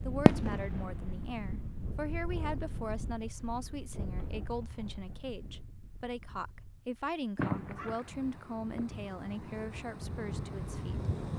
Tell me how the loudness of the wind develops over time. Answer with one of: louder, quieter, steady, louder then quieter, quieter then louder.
quieter then louder.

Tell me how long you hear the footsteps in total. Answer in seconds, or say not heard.
not heard.